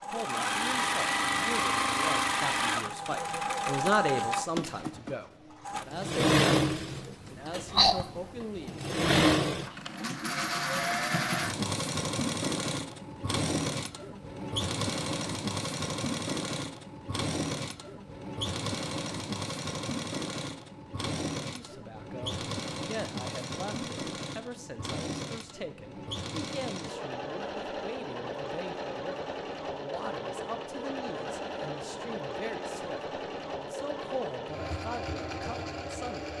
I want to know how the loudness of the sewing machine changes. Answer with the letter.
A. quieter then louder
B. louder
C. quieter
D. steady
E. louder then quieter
C.